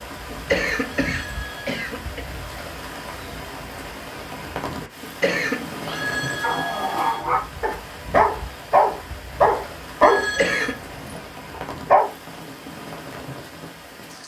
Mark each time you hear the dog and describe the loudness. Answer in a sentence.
You can hear the dog from 5.8 to 12.1 s, getting louder then quieter.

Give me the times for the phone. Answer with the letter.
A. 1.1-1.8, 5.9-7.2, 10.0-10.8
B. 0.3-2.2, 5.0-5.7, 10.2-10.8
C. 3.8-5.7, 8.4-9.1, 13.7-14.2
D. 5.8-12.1
A.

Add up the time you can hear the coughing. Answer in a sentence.
The coughing can be heard for 3 seconds in total.